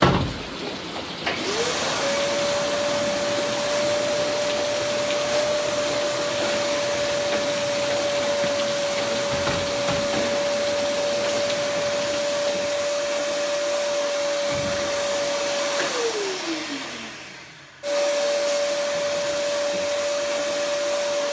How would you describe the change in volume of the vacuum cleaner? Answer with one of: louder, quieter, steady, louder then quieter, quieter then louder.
steady.